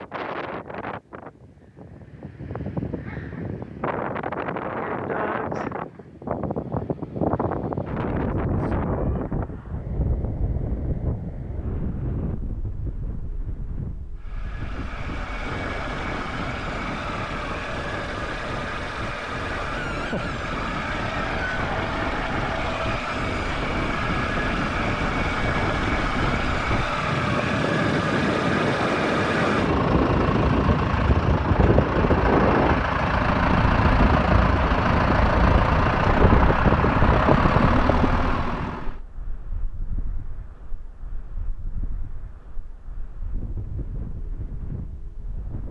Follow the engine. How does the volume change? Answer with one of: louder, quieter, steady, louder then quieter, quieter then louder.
louder.